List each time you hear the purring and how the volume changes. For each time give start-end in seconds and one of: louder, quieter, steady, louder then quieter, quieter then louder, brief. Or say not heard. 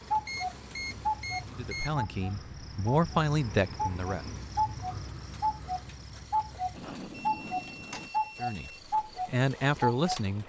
not heard.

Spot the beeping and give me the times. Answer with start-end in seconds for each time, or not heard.
0.2-1.9, 7.1-8.8.